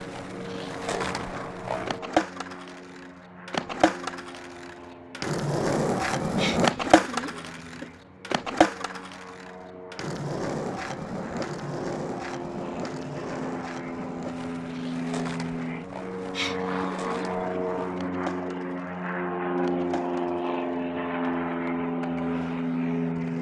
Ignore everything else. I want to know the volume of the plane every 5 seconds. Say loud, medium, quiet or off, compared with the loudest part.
quiet, quiet, medium, loud, loud.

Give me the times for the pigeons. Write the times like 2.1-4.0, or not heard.
6.3-7.9, 16.3-17.9.